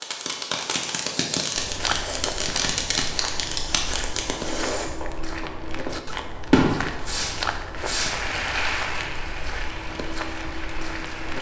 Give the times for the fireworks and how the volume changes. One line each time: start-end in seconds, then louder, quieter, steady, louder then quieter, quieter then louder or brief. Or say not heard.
0.0-8.2 quieter then louder.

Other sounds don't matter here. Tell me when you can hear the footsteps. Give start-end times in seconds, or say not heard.
1.6-11.3.